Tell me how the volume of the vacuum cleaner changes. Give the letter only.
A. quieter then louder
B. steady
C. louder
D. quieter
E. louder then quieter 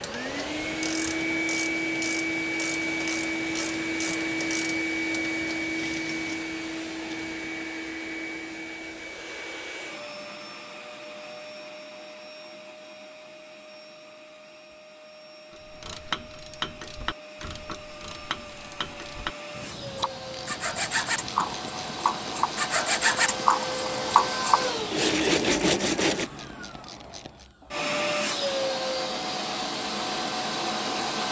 A.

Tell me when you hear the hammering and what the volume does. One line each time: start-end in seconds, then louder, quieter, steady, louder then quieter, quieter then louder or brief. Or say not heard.
not heard.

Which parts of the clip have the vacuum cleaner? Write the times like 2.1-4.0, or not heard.
0.0-31.2.